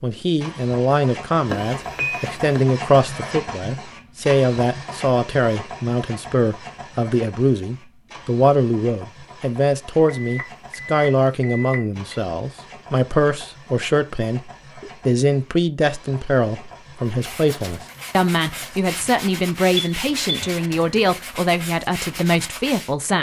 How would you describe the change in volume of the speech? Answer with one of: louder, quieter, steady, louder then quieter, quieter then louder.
steady.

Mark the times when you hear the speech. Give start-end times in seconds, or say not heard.
0.0-23.1.